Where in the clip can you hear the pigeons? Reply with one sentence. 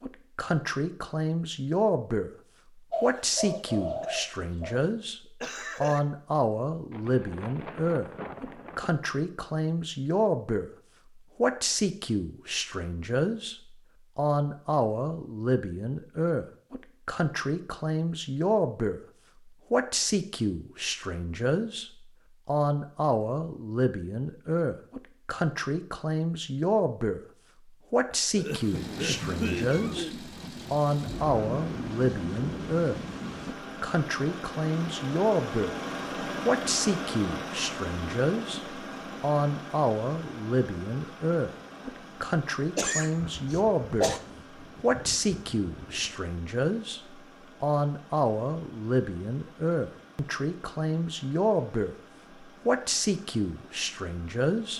The pigeons can be heard from 2.9 to 4.9 s.